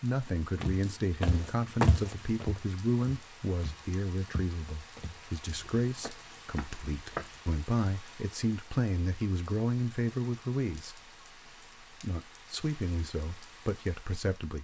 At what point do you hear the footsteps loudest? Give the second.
2 s.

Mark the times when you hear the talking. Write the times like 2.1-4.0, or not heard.
0.0-11.0, 11.9-14.5.